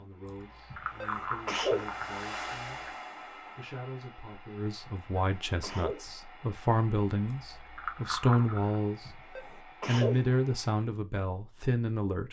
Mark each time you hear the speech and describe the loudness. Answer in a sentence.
The speech can be heard from 0.0 to 9.2 s, getting louder; and briefly from 9.8 to 12.2 s.